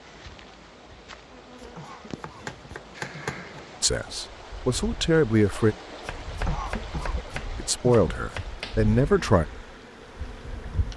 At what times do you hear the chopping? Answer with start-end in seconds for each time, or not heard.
1.8-3.4, 5.9-8.8.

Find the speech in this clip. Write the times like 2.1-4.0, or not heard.
3.8-5.8, 7.5-9.4.